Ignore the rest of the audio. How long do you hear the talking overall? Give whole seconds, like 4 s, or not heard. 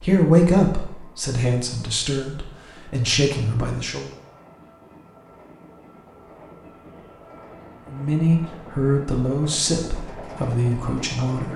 8 s.